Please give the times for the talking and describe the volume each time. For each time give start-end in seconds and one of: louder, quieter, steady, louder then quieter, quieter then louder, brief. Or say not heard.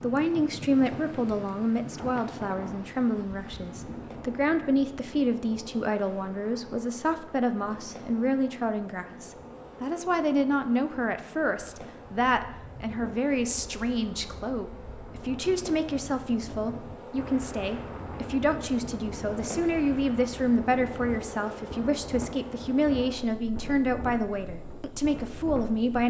0.0-26.0 steady.